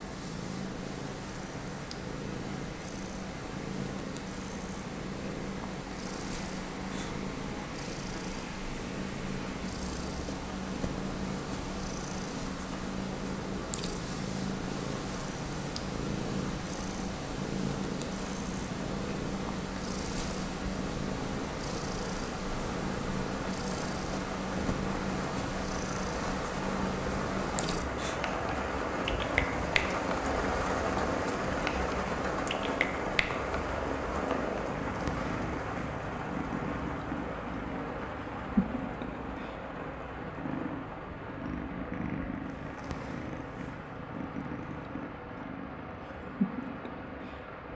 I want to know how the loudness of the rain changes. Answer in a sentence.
The loudness of the rain goes up, then down.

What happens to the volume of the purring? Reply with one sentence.
The volume of the purring stays about the same.